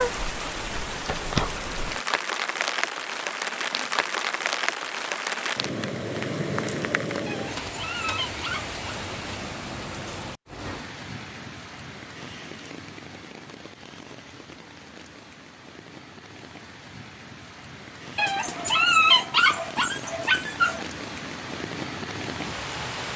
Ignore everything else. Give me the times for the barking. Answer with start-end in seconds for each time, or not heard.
7.2-8.8, 18.1-20.9.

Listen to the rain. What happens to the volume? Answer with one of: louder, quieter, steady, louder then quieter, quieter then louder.
quieter then louder.